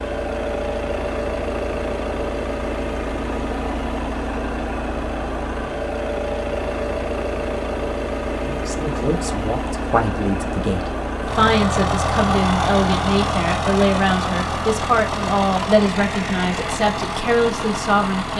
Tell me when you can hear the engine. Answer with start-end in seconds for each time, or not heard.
0.0-18.3.